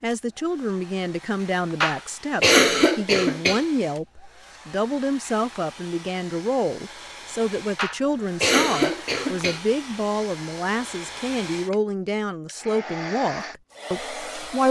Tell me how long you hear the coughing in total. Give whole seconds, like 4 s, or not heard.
4 s.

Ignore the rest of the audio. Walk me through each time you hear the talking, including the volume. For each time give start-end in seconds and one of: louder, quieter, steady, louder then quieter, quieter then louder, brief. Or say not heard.
0.0-14.6 steady.